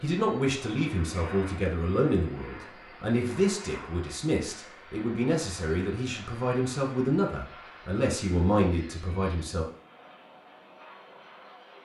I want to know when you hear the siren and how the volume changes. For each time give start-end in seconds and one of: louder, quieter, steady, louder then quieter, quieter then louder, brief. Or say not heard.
not heard.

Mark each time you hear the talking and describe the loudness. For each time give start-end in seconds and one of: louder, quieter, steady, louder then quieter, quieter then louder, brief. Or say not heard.
0.0-9.7 steady.